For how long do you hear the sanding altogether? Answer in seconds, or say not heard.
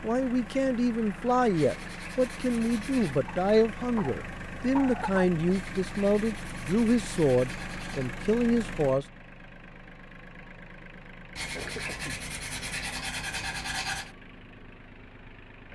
7 s.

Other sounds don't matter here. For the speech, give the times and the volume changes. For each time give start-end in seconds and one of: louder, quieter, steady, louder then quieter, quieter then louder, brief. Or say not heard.
0.0-9.1 steady.